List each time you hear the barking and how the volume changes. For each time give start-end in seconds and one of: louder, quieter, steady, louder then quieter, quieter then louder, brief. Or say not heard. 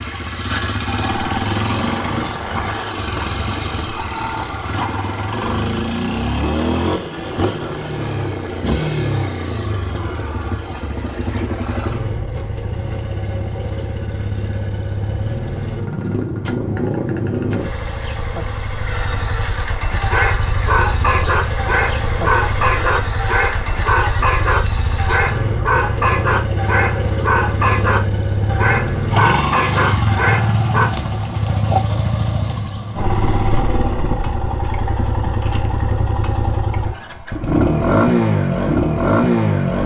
20.0-30.9 steady.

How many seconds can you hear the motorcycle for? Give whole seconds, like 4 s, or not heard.
40 s.